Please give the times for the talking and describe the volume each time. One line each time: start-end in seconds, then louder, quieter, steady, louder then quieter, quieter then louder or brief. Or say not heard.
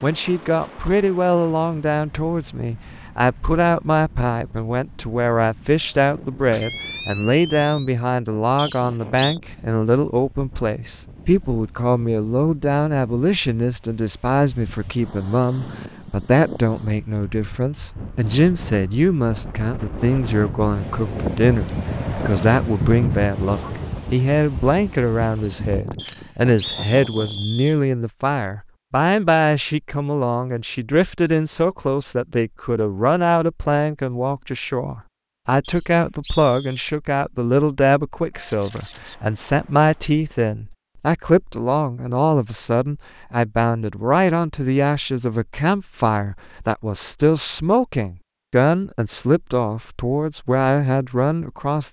0.0-51.8 steady.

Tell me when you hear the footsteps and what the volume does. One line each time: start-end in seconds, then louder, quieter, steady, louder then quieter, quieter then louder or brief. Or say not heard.
not heard.